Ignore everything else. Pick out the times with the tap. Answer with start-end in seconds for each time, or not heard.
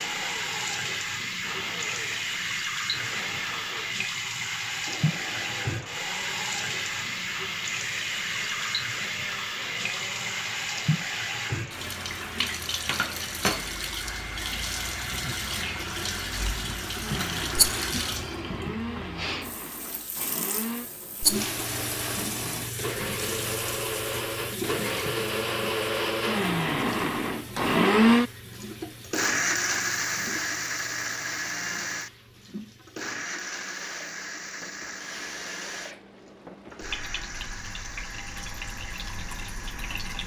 0.0-40.2.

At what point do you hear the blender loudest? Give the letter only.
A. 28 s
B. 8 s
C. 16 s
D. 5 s
A.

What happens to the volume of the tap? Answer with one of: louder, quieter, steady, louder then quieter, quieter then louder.
quieter.